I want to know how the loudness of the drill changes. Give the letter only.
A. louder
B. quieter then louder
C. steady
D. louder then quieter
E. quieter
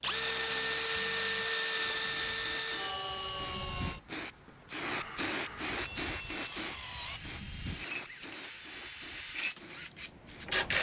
B.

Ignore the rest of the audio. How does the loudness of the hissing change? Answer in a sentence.
The volume of the hissing goes up, then down.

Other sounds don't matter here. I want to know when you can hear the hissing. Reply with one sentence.
You can hear the hissing from 1.7 to 10.7 s.